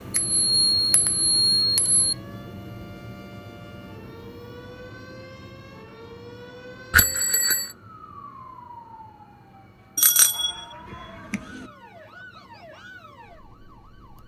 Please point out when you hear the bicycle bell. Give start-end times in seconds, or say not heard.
0.1-2.1, 6.9-7.7, 9.9-11.7.